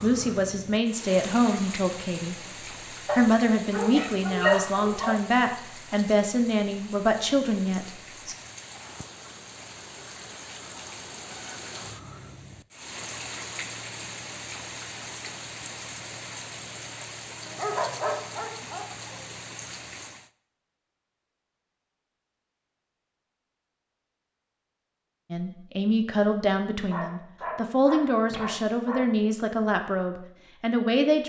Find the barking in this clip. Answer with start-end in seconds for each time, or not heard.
3.0-5.2, 17.4-19.1, 26.9-29.1.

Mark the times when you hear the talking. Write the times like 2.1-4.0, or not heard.
0.0-2.4, 3.1-8.3, 25.3-31.2.